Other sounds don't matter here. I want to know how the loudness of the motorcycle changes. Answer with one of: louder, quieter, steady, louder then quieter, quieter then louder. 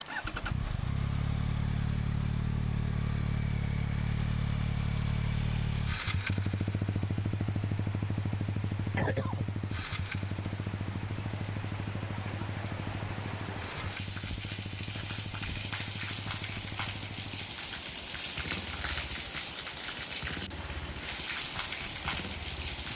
quieter.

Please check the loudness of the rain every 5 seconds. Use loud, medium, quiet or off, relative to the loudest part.
quiet, medium, medium, loud, loud.